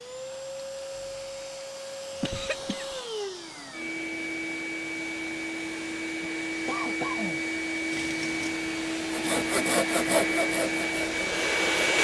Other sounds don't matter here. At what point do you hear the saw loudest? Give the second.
10 s.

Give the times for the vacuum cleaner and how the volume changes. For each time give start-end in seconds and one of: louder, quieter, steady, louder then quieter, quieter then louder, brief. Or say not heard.
0.0-11.9 louder.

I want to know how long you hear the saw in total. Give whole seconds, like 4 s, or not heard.
3 s.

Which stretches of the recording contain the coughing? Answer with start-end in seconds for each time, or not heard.
2.2-3.0, 6.7-7.4.